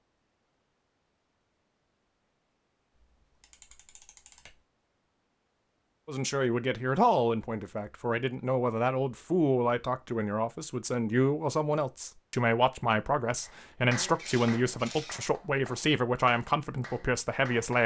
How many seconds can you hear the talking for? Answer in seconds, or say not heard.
12 s.